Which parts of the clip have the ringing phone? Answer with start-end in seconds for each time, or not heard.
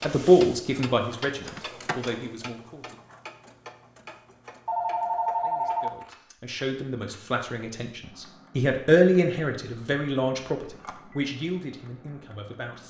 1.4-2.3, 4.7-6.3, 10.6-11.2.